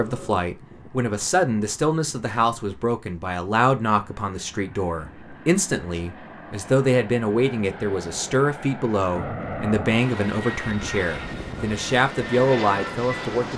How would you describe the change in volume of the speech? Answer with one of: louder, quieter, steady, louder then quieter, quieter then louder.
steady.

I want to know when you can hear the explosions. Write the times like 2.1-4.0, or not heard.
not heard.